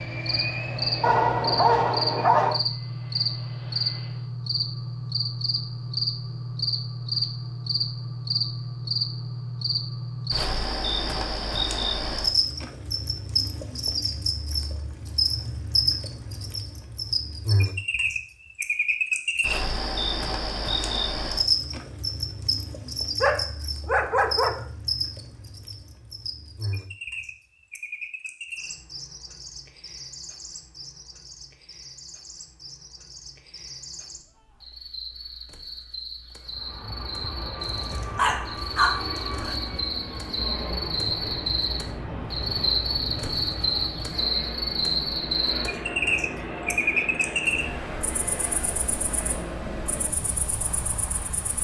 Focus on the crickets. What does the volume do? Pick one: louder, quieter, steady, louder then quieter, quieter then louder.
quieter then louder.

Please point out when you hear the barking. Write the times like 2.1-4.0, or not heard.
1.0-2.6, 23.2-24.6, 37.6-39.6.